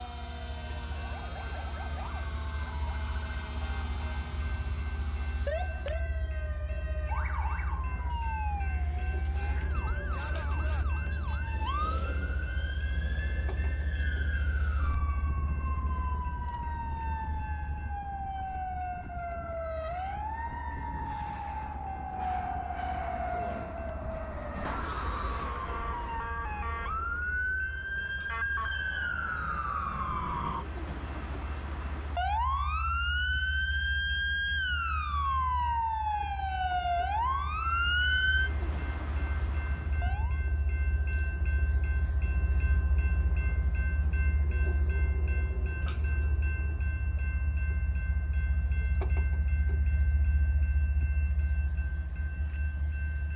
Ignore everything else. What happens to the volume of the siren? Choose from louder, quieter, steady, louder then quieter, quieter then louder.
louder.